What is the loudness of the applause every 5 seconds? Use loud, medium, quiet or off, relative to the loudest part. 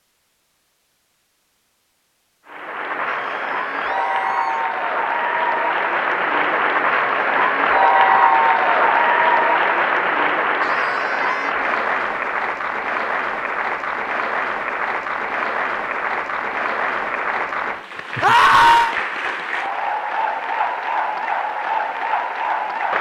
medium, loud, medium, medium, medium.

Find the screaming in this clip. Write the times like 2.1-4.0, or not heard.
3.0-4.7, 10.6-11.6, 18.2-18.9.